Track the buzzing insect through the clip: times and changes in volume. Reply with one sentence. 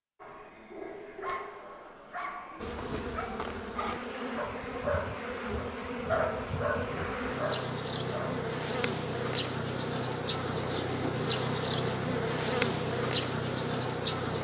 The buzzing insect can be heard from 2.5 to 14.3 s, getting louder.